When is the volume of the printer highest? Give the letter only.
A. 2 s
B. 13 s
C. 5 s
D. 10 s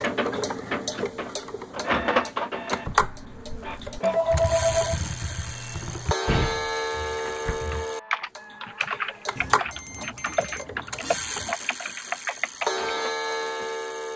A.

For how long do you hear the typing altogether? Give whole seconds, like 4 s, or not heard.
10 s.